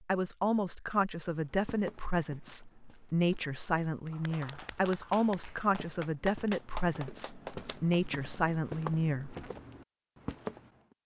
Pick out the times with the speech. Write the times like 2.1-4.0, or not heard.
0.1-9.3.